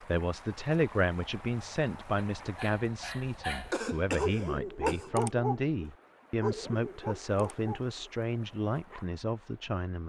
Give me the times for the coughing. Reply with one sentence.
The coughing can be heard from 3.7 to 5.1 s.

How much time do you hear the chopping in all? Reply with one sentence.
You can't hear the chopping here.